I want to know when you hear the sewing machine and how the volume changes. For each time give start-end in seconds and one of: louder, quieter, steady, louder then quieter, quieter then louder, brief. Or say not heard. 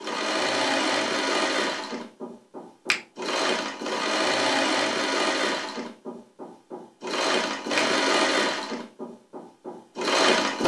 0.0-10.6 steady.